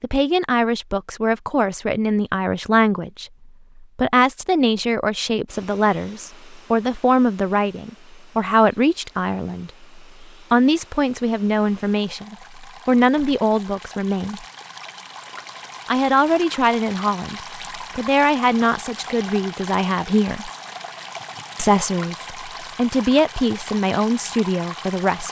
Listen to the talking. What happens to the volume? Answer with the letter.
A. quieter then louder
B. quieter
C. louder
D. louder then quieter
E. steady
E.